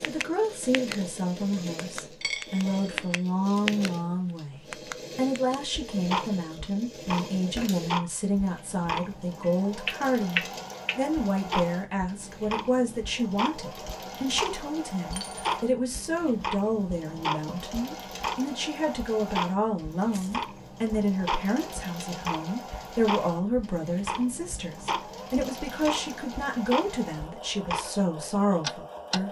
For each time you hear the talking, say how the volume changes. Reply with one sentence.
The talking can be heard from 0.0 to 29.2 s, at a steady volume.